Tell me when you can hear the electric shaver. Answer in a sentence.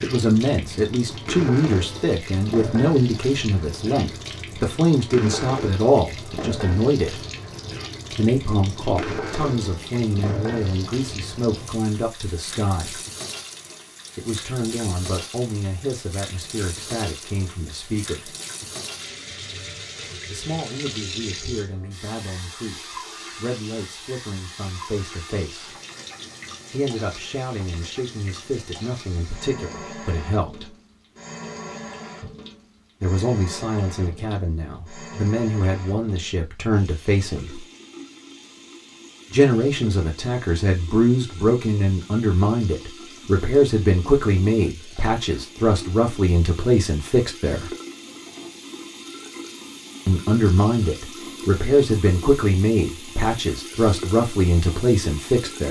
The electric shaver can't be heard in this clip.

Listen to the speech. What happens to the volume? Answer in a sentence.
The loudness of the speech goes down, then up.